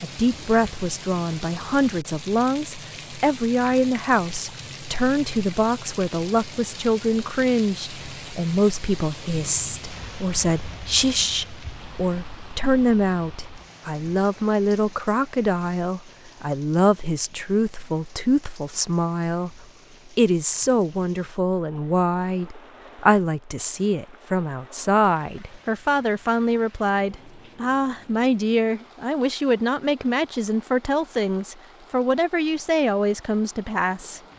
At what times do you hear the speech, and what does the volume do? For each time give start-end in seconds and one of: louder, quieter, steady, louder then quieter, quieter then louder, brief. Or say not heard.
0.0-34.2 steady.